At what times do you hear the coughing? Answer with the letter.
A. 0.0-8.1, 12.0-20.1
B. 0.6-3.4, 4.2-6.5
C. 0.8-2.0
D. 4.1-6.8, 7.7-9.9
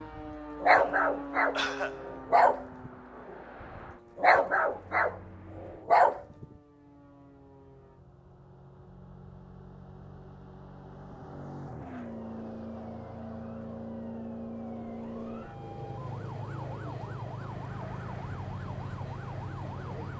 C.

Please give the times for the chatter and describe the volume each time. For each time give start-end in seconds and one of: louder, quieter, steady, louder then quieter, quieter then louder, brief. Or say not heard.
not heard.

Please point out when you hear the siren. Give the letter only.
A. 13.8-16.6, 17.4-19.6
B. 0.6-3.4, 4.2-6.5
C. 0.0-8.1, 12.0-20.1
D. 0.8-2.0
C.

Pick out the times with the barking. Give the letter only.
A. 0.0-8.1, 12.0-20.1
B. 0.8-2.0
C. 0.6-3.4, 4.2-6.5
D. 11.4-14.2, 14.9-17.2
C.